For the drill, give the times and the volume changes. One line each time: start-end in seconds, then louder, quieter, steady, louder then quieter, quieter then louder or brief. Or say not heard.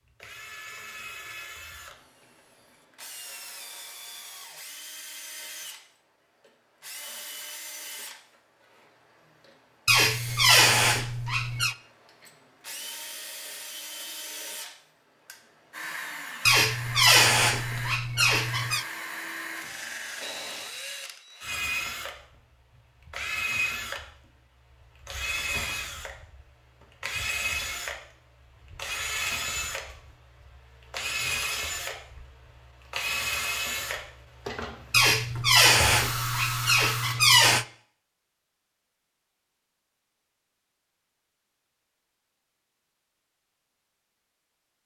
0.0-37.3 louder.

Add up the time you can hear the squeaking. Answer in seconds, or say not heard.
7 s.